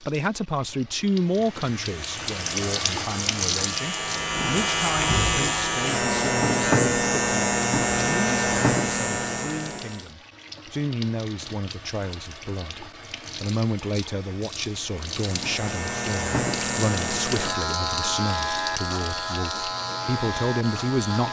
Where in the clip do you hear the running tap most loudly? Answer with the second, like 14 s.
3 s.